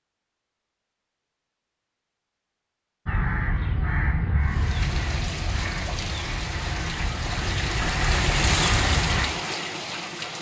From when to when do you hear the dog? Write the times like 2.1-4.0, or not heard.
not heard.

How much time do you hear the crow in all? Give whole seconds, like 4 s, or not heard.
6 s.